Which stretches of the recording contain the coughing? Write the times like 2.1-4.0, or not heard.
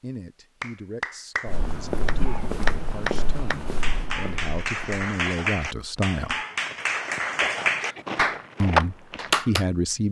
2.2-2.9, 7.4-8.1.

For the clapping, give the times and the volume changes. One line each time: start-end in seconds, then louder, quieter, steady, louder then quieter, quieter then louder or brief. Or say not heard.
0.6-9.7 louder.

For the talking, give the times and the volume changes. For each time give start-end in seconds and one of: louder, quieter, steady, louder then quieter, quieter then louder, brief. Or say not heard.
0.0-6.4 louder
8.6-10.0 brief.